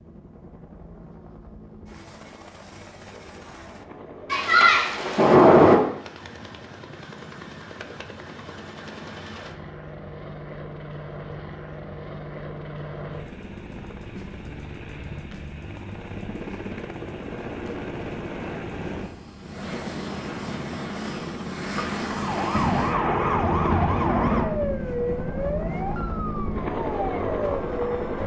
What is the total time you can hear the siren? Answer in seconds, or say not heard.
6 s.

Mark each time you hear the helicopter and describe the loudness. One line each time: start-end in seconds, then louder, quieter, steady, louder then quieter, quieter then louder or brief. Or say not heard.
0.0-28.2 louder.